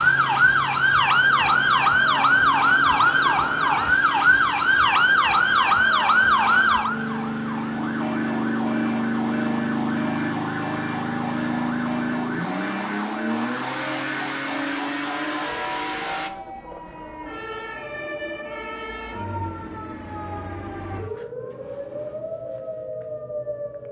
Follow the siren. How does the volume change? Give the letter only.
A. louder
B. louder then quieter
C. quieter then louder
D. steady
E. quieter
E.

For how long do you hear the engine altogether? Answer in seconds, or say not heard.
16 s.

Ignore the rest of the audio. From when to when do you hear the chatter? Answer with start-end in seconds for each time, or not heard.
not heard.